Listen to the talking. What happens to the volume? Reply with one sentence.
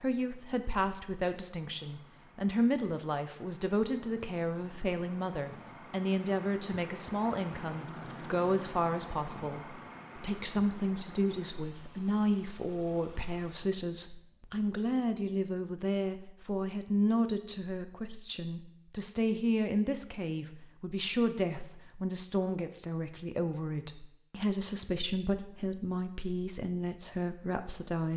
The loudness of the talking stays about the same.